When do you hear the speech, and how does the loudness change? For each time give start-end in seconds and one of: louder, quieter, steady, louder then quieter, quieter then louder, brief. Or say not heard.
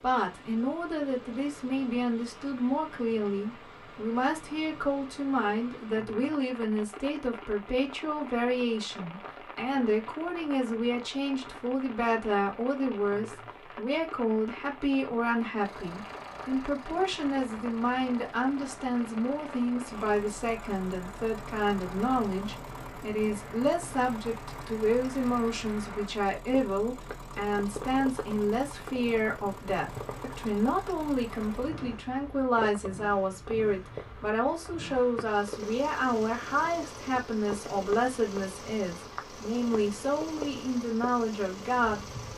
0.0-42.0 steady.